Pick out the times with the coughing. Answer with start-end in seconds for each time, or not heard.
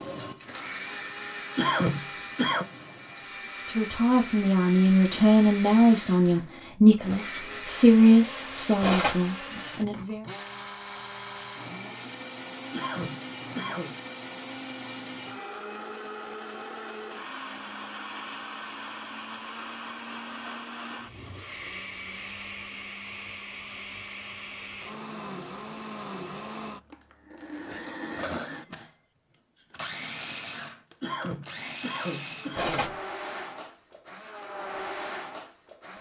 1.6-2.6, 12.7-13.9, 31.0-33.0.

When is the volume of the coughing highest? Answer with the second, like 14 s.
2 s.